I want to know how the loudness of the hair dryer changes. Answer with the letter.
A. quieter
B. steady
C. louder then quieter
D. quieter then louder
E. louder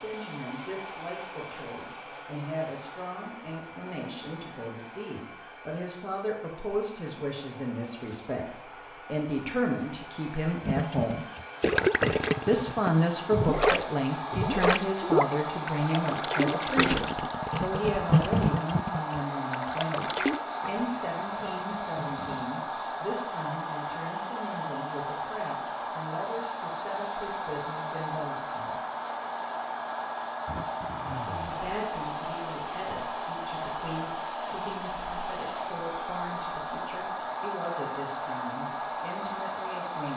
E.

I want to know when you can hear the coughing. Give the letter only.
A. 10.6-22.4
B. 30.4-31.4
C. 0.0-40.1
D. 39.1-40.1
B.